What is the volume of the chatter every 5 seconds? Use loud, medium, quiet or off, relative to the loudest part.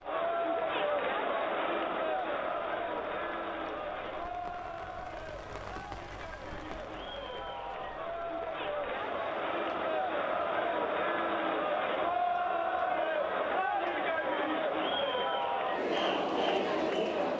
loud, medium, loud, loud.